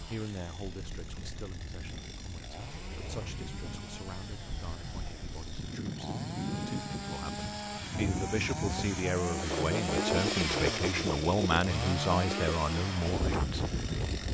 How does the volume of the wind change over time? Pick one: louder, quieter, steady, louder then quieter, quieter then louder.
louder.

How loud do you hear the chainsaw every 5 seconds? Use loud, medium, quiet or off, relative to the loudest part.
quiet, loud, loud.